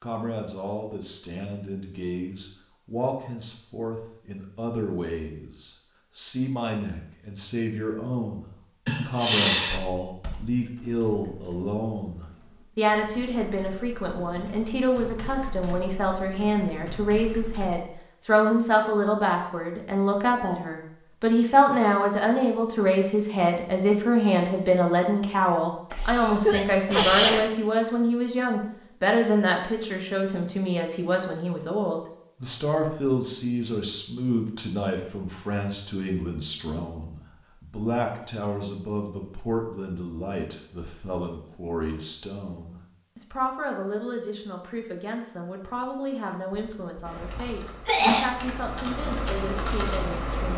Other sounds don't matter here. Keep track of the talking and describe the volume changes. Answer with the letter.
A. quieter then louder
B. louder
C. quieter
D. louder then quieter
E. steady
D.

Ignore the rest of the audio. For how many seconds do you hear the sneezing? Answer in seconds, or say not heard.
4 s.